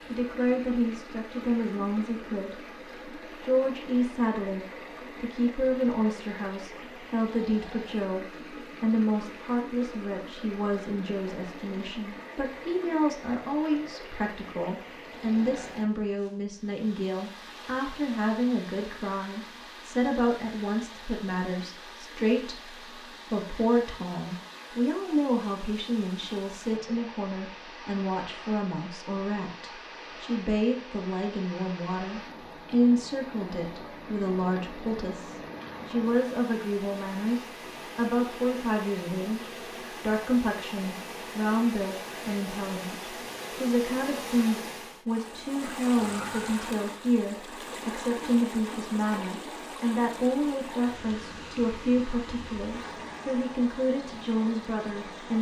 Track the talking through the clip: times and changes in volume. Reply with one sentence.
The talking can be heard from 0.1 to 55.3 s, at a steady volume.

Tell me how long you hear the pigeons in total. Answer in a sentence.
The pigeons can't be heard in this clip.